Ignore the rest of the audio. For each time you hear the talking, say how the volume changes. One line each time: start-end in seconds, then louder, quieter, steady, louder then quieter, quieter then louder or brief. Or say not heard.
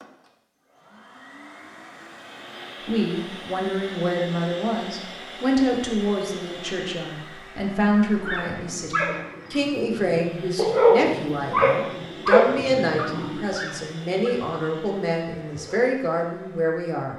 2.9-17.1 steady.